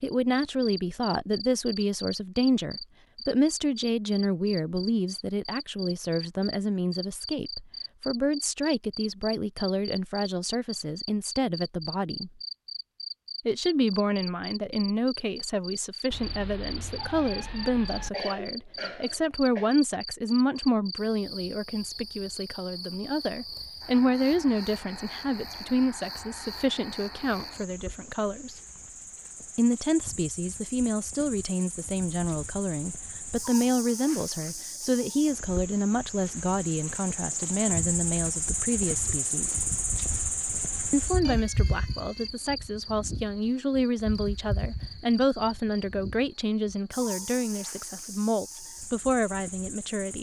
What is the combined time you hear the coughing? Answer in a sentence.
You can hear the coughing for 2 seconds altogether.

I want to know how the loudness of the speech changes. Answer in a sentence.
The loudness of the speech stays about the same.